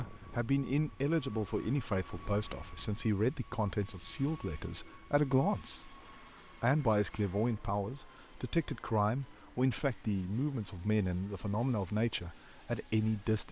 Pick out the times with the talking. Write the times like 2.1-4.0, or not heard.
0.0-6.0, 6.6-13.4.